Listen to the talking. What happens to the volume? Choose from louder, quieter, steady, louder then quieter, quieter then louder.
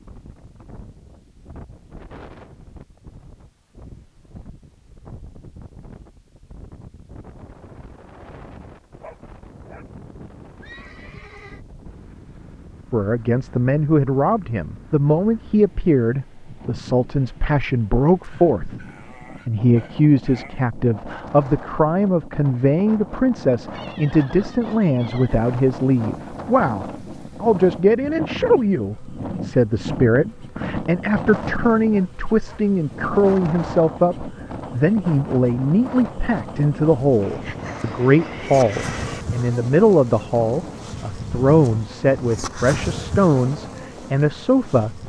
steady.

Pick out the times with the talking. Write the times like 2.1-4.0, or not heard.
12.9-18.9, 19.4-45.0.